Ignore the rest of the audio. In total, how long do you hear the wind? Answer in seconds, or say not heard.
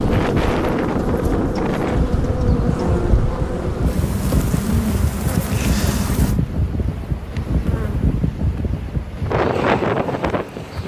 11 s.